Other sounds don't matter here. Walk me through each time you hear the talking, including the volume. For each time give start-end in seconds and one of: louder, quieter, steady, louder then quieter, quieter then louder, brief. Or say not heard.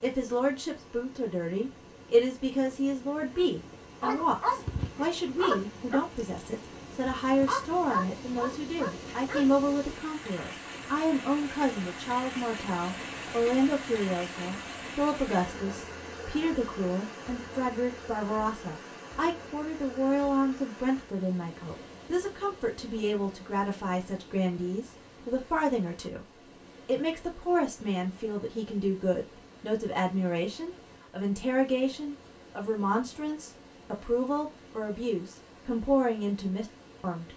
0.0-37.3 steady.